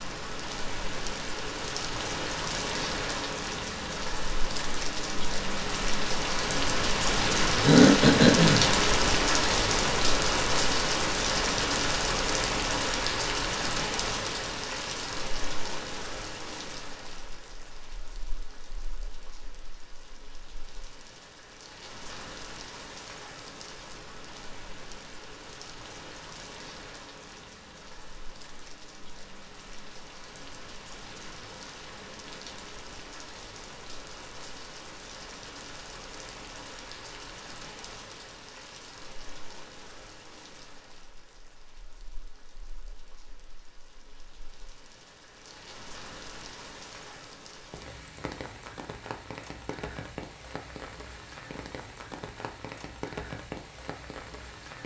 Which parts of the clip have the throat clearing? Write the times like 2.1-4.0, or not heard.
7.6-8.7.